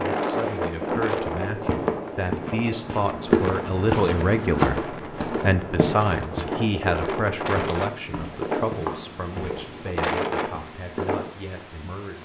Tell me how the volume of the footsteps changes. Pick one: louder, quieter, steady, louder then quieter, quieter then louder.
louder then quieter.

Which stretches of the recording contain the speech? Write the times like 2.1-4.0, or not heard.
0.1-12.2.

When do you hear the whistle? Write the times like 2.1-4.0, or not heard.
not heard.